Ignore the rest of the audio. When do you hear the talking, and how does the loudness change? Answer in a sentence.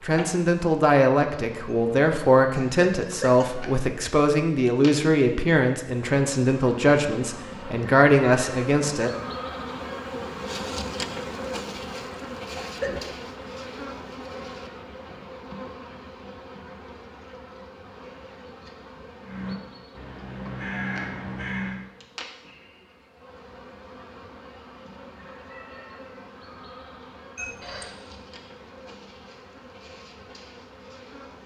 You can hear the talking from 0.0 to 9.1 s, at a steady volume.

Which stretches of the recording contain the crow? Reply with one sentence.
You can hear the crow from 19.2 to 21.9 s.